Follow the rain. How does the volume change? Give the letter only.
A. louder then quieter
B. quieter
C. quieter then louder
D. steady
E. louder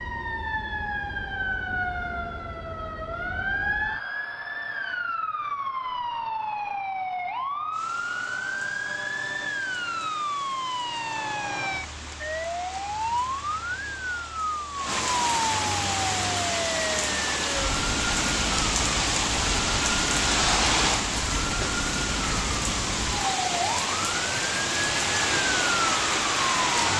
E.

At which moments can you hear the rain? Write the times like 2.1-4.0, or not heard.
7.7-26.9.